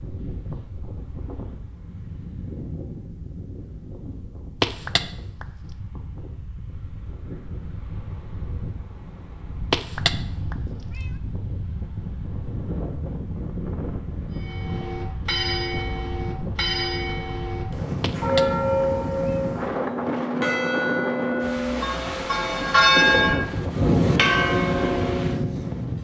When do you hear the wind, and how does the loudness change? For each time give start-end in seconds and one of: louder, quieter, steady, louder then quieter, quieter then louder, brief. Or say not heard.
0.0-25.9 louder.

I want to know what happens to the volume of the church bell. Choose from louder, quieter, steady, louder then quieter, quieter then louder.
louder.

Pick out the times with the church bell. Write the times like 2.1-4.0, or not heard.
14.3-25.8.